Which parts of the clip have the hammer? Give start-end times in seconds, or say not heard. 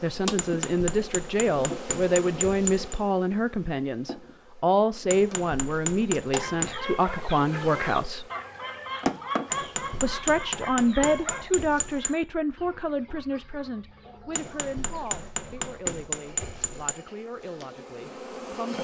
0.3-3.0, 5.1-6.8, 9.5-12.2, 14.3-16.9.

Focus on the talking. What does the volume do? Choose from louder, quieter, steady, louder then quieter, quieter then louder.
quieter.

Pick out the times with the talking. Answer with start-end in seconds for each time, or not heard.
0.0-8.2, 10.0-18.7.